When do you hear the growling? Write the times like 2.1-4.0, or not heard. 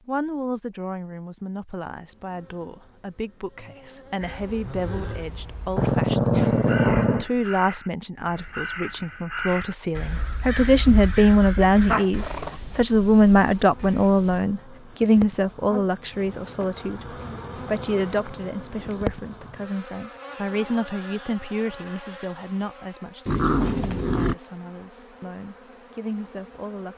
5.8-7.2, 11.9-12.6, 23.2-24.4.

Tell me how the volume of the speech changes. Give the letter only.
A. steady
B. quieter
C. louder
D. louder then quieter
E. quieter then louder
D.